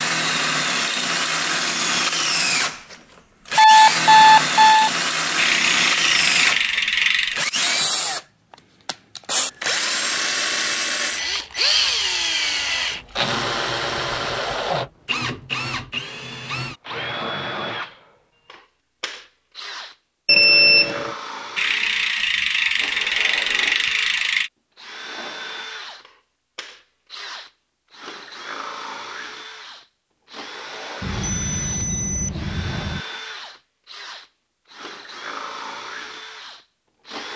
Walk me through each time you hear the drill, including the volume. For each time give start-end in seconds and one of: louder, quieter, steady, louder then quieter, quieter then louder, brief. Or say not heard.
0.0-37.3 quieter.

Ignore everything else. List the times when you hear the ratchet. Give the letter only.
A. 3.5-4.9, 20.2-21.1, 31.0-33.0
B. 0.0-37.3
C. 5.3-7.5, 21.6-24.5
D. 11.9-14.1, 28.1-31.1
C.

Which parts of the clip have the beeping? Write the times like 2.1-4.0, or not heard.
3.5-4.9, 20.2-21.1, 31.0-33.0.